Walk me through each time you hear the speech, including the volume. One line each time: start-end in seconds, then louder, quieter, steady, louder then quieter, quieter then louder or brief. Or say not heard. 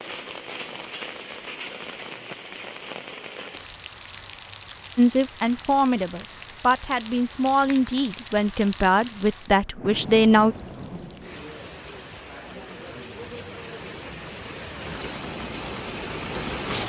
5.0-10.6 steady.